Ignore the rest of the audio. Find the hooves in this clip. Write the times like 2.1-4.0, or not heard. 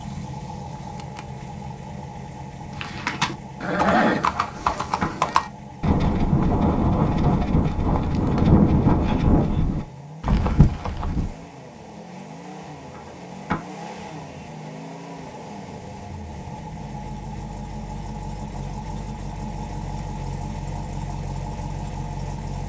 2.7-11.3.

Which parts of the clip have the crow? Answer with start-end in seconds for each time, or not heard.
not heard.